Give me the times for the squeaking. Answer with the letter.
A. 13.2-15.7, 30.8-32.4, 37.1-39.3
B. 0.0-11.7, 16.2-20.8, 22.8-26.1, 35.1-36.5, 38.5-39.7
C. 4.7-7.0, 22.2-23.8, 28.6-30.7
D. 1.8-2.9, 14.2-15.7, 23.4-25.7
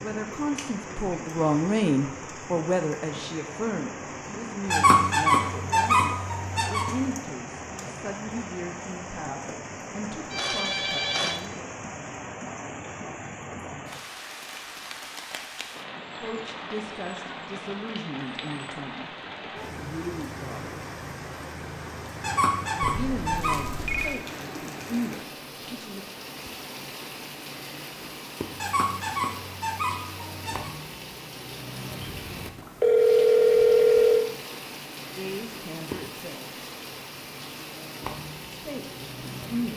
C.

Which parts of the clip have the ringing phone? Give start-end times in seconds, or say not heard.
10.3-11.4, 22.8-24.2, 32.0-34.2.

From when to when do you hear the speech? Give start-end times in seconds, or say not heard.
0.0-11.7, 16.2-20.8, 22.8-26.1, 35.1-36.5, 38.5-39.7.